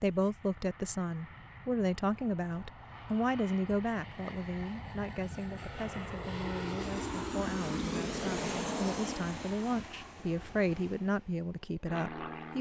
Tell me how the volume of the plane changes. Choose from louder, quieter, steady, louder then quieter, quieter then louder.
louder then quieter.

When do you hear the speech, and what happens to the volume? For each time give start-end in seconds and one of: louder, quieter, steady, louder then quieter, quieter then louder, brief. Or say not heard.
0.0-12.5 quieter then louder.